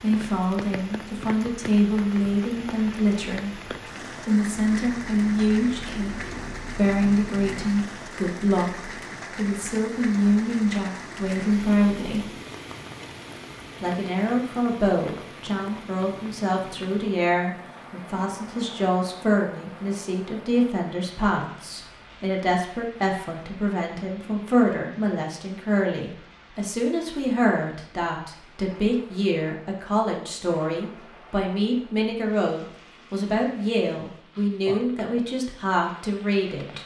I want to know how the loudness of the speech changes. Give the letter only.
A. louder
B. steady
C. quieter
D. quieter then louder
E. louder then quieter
B.